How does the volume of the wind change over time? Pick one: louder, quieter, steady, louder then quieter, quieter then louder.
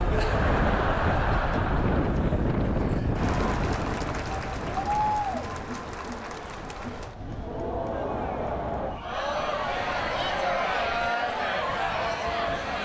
quieter.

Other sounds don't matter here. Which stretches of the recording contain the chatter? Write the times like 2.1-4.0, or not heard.
0.0-12.7.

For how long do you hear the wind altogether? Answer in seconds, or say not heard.
13 s.